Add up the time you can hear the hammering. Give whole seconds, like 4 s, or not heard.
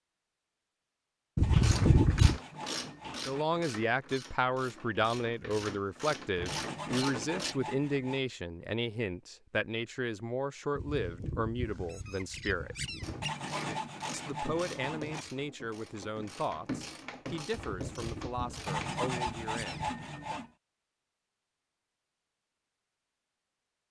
not heard.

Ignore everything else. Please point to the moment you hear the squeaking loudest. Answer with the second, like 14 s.
2 s.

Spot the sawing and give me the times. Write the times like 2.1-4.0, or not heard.
1.4-3.5, 6.5-8.2, 13.2-15.2, 18.6-20.5.